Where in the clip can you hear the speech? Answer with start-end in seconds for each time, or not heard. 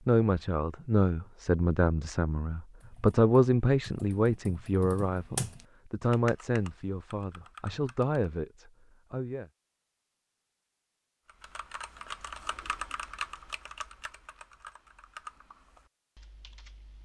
0.1-9.4.